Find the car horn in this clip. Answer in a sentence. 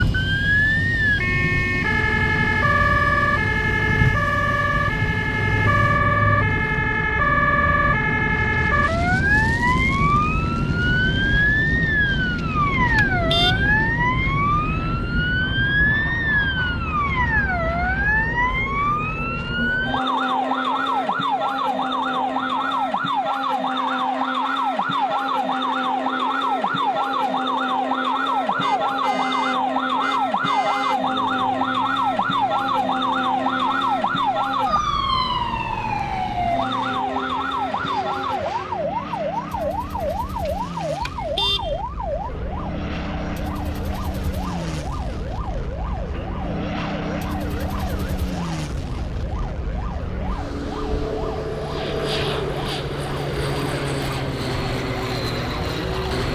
The car horn can be heard from 12.3 to 13.7 s, from 28.6 to 31.0 s and from 40.5 to 41.8 s.